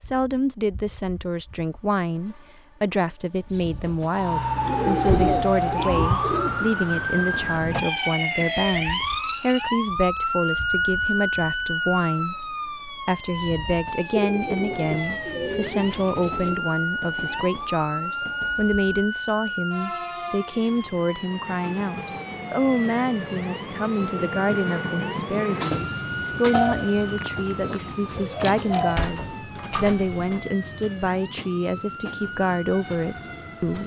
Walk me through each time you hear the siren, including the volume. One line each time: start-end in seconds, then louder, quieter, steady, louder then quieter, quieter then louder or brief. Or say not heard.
4.1-33.8 quieter.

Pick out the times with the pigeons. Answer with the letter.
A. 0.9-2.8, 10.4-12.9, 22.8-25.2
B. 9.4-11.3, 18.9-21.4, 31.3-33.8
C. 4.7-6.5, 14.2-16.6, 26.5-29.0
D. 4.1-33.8
C.